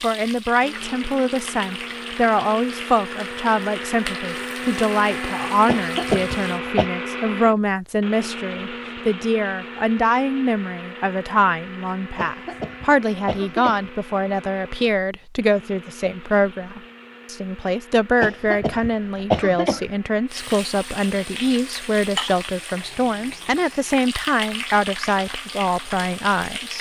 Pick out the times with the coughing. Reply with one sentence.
The coughing can be heard from 5.7 to 6.9 s, from 12.2 to 13.9 s and from 18.2 to 19.9 s.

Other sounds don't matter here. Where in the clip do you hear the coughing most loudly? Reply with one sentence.
The loudest moment of the coughing is at 19 seconds.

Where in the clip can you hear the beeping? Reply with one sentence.
The beeping can't be heard in this clip.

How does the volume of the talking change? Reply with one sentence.
The loudness of the talking stays about the same.